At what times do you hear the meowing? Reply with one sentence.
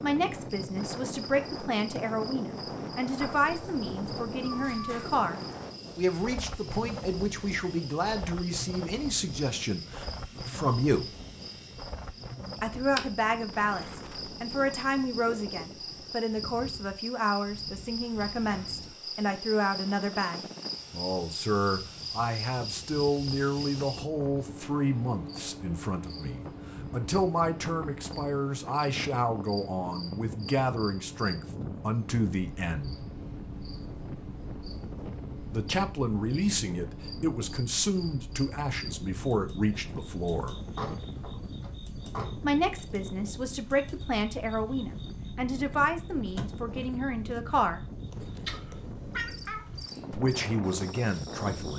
You can hear the meowing from 3.2 to 5.2 s and from 48.1 to 49.9 s.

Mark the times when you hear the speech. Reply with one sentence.
The speech can be heard from 0.0 to 11.1 s, from 12.6 to 33.0 s, from 35.5 to 40.6 s, from 42.4 to 47.9 s and from 50.1 to 51.7 s.